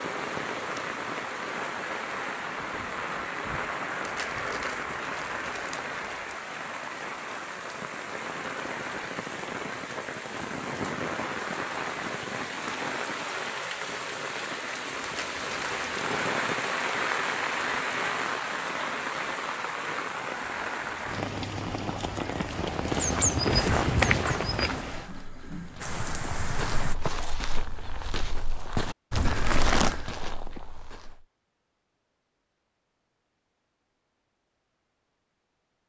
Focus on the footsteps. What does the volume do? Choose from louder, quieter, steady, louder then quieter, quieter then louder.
quieter.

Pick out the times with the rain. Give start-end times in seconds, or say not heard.
0.0-26.9.